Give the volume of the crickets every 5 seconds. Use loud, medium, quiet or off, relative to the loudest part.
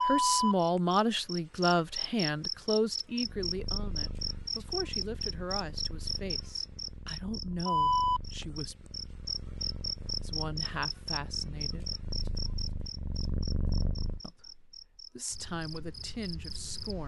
loud, loud, medium, quiet.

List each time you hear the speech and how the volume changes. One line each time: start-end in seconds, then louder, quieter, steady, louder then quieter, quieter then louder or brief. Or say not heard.
0.1-8.8 quieter
10.2-11.9 brief
14.2-17.0 brief.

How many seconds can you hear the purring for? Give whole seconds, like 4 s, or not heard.
11 s.